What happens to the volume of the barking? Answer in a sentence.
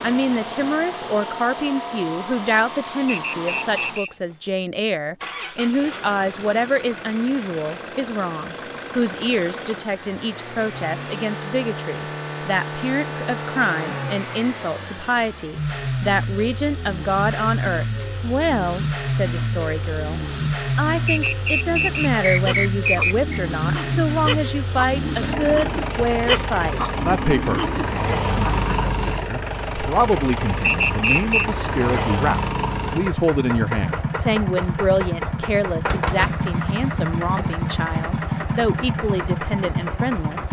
The loudness of the barking goes up.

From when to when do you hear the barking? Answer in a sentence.
You can hear the barking from 22.4 to 29.1 s.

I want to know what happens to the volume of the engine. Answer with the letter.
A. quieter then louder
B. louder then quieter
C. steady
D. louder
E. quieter
D.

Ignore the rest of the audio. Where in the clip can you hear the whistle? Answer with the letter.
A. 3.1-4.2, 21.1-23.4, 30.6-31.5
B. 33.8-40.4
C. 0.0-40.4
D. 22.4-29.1
A.